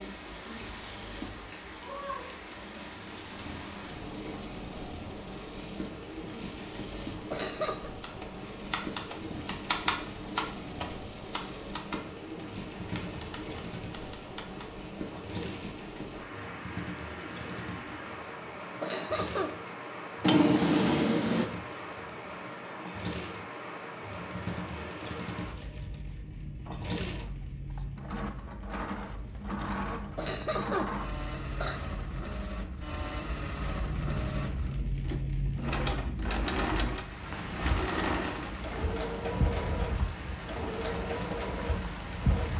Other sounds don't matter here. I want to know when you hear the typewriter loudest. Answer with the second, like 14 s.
10 s.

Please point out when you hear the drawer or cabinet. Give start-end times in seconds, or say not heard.
20.2-21.5.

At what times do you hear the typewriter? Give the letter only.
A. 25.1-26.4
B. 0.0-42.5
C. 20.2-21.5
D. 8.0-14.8
D.